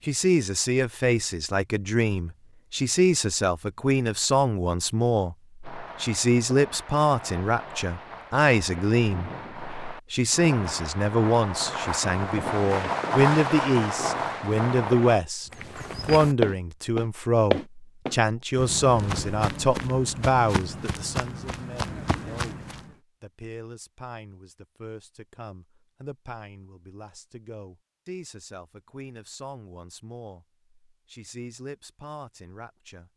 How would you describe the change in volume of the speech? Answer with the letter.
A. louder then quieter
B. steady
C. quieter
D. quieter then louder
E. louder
C.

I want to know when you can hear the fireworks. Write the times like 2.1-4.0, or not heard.
5.6-15.2.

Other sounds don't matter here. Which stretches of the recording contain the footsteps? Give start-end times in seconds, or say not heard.
15.5-22.9.